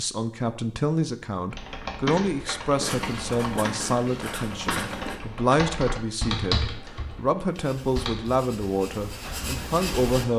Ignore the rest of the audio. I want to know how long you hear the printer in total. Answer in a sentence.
You can't hear the printer here.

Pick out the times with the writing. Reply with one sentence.
The writing can be heard from 2.7 to 5.2 s and from 7.5 to 10.2 s.